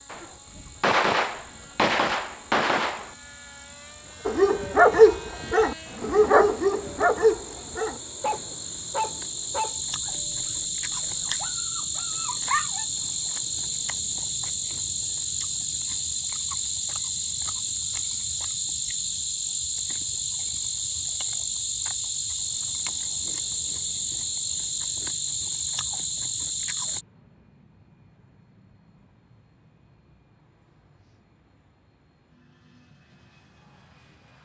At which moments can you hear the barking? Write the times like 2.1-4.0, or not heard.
4.2-12.8.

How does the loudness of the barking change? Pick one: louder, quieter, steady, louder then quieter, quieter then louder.
quieter.